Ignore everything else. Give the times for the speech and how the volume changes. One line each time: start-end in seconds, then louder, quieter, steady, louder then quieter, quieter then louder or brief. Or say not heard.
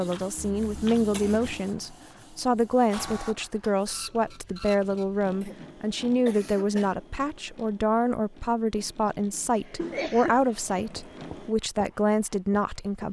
0.0-13.0 steady.